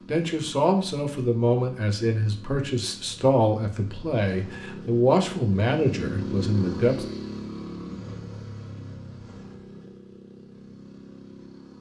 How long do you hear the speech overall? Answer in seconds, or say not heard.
7 s.